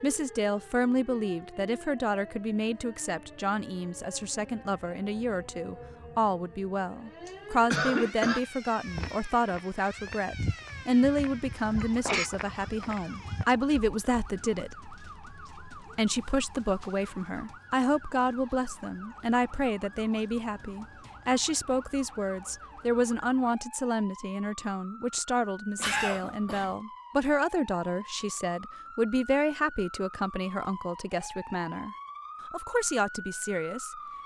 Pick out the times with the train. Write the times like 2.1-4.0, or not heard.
not heard.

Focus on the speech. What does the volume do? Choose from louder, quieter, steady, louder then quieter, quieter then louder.
steady.